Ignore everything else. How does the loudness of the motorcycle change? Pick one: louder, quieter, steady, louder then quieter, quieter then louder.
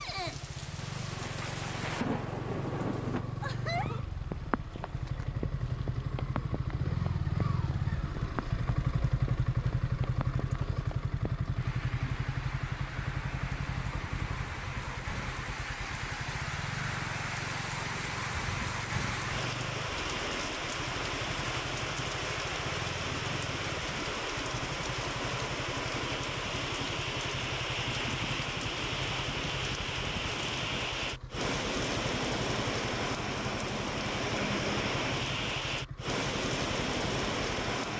quieter.